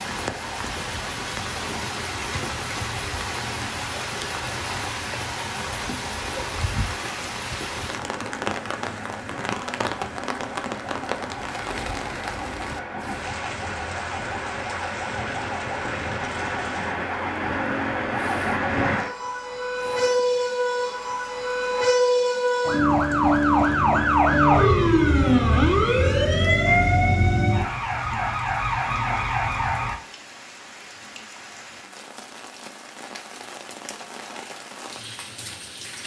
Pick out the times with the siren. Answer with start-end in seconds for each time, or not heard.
0.0-29.9.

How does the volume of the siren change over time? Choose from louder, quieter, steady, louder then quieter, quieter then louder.
louder.